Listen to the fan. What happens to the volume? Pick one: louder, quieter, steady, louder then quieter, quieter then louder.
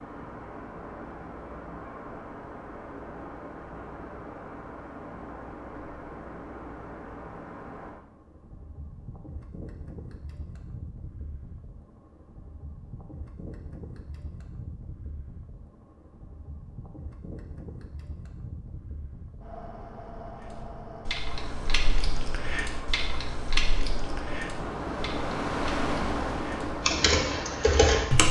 quieter then louder.